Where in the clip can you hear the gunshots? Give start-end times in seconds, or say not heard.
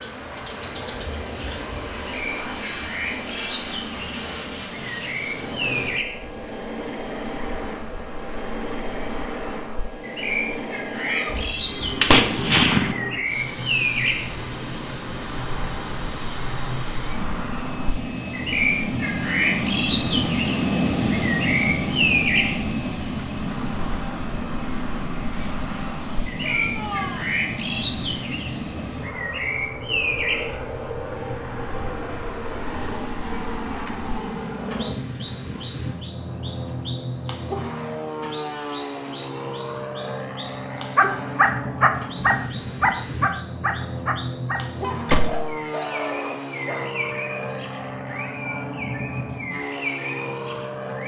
11.3-12.9, 45.0-45.5.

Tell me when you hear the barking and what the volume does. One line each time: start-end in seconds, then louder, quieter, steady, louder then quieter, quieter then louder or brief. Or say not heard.
40.7-46.9 quieter.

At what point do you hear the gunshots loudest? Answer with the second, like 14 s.
12 s.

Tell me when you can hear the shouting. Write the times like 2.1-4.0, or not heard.
11.0-11.4, 26.4-27.3, 47.7-48.8.